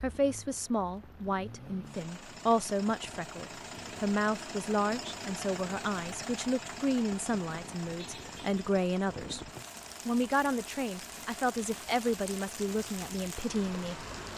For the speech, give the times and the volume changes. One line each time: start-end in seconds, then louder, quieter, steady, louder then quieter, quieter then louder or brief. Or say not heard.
0.0-14.1 steady.